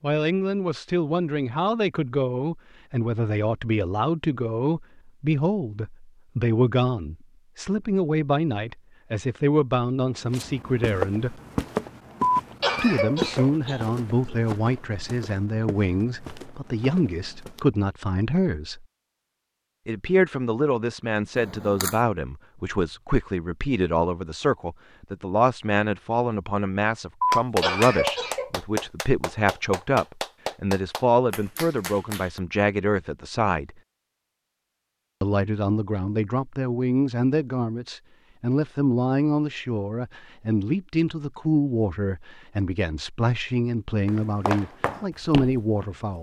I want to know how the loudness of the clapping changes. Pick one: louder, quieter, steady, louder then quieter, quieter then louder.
quieter.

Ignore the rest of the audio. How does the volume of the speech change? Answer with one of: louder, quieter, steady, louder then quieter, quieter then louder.
steady.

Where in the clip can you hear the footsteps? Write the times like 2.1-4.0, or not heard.
10.2-17.7, 44.0-46.1.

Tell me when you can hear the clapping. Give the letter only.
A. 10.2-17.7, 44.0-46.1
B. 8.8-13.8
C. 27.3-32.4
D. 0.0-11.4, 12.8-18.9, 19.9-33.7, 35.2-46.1
C.